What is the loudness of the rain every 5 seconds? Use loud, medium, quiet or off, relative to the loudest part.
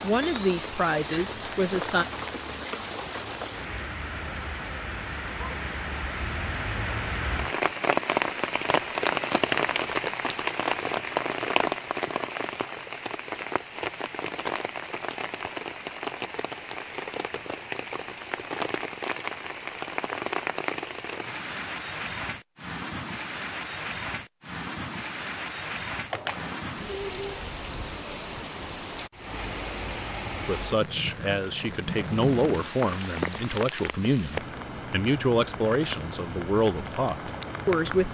medium, loud, loud, medium, medium, medium, medium, medium.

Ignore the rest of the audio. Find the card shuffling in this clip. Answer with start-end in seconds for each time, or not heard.
26.1-26.6.